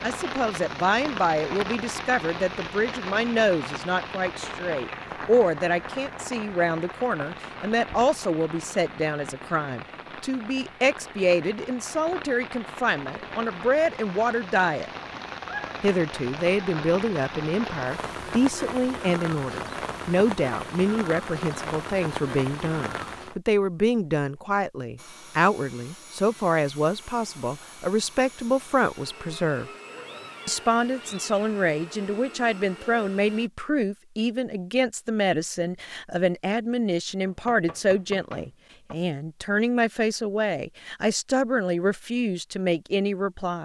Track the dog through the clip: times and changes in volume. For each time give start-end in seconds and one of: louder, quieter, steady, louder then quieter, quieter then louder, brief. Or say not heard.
not heard.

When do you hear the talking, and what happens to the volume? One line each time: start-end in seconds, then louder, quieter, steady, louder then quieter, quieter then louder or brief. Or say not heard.
0.0-14.8 steady
15.8-29.7 steady
30.4-43.6 steady.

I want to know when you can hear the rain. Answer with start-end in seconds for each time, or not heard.
0.0-23.4.